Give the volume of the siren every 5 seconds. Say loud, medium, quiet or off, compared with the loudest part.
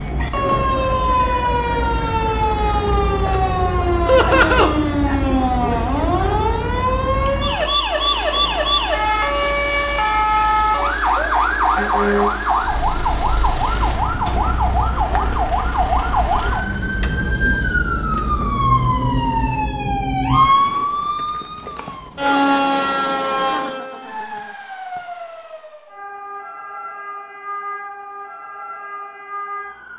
loud, loud, loud, loud, loud, quiet.